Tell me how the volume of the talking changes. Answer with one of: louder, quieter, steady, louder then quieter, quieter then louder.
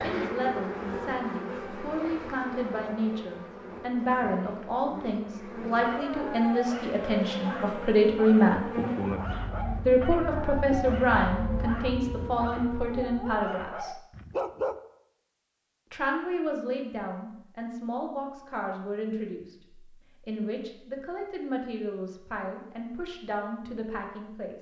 louder then quieter.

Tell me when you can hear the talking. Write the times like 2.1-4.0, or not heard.
0.0-8.7, 9.8-13.9, 15.9-24.5.